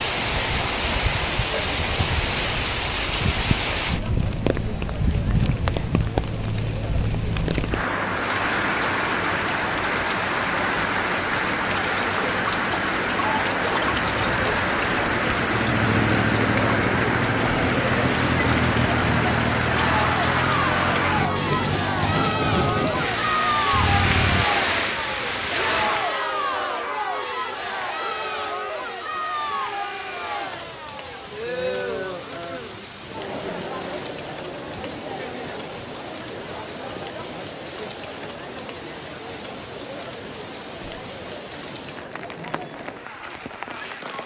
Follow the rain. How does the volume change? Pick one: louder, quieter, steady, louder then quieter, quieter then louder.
quieter.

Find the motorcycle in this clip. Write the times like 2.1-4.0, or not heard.
13.8-24.4.